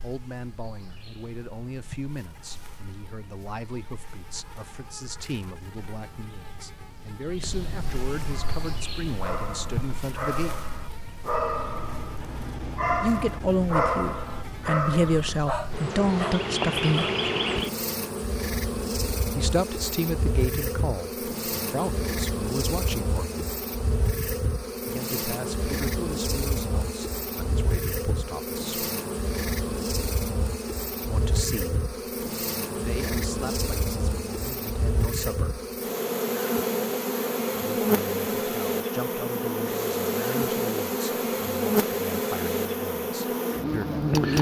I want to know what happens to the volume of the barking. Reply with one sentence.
The volume of the barking goes up, then down.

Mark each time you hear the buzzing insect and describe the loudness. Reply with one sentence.
You can hear the buzzing insect from 0.0 to 44.3 s, getting louder.